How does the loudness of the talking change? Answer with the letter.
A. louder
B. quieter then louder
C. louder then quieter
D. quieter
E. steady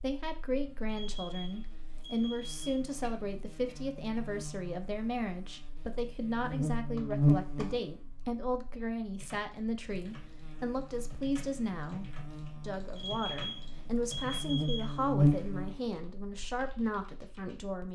E.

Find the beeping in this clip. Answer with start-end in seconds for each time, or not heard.
0.8-2.8, 12.9-15.1.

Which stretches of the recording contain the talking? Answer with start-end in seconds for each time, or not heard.
0.0-17.8.